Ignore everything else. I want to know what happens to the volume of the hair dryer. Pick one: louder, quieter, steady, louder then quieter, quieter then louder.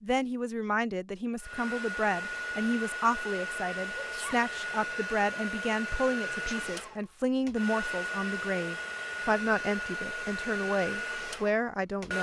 steady.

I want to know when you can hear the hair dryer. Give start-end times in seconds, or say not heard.
1.4-12.1.